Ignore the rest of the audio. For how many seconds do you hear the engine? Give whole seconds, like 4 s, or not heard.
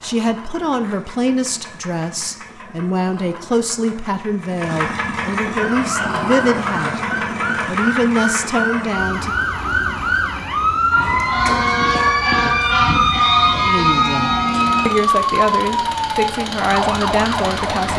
18 s.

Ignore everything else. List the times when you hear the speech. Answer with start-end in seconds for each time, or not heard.
0.0-7.0, 7.7-9.3, 13.7-17.9.